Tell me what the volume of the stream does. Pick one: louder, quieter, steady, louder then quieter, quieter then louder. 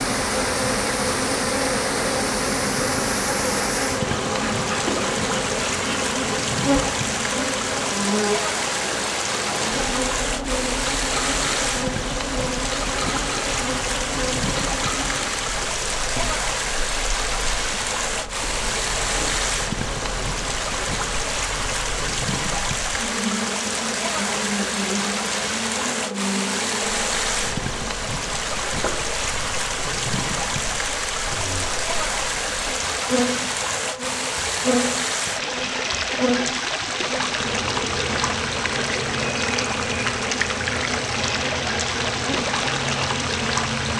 steady.